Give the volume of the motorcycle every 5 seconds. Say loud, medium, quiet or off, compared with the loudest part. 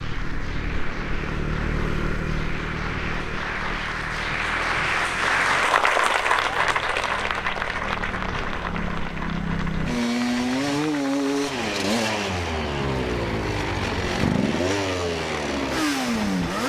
medium, medium, loud, loud.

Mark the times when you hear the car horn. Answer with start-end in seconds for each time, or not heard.
not heard.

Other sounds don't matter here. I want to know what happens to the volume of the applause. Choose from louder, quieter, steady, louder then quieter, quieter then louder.
louder then quieter.